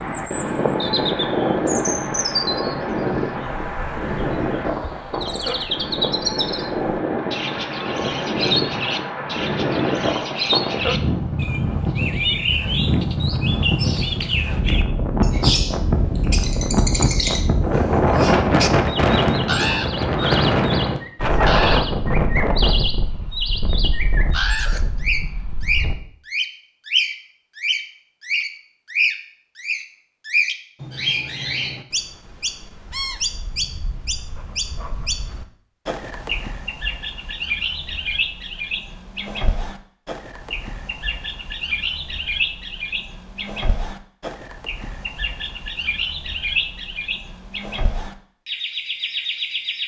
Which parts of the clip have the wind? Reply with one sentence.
You can hear the wind from 0.0 to 25.9 s.